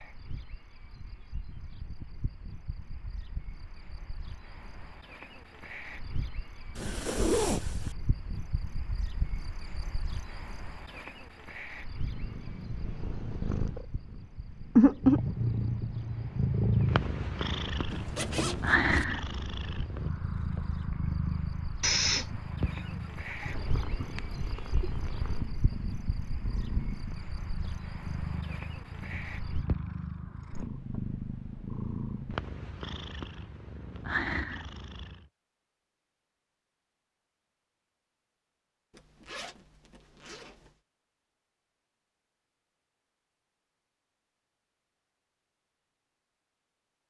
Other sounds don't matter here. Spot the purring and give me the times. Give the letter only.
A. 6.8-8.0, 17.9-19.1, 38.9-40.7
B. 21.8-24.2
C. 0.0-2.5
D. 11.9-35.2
D.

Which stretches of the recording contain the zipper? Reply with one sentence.
You can hear the zipper from 6.8 to 8.0 s, from 17.9 to 19.1 s and from 38.9 to 40.7 s.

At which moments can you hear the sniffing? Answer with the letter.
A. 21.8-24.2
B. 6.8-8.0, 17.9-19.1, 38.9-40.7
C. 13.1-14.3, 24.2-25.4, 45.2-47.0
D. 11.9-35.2
A.